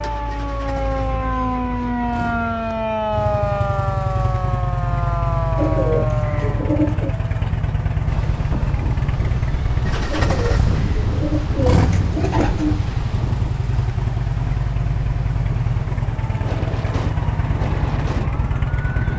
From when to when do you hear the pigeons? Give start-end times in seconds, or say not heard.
5.5-7.2, 10.1-12.9.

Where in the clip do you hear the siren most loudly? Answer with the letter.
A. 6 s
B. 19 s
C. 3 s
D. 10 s
C.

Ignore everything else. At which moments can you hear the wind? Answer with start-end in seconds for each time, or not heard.
8.1-19.1.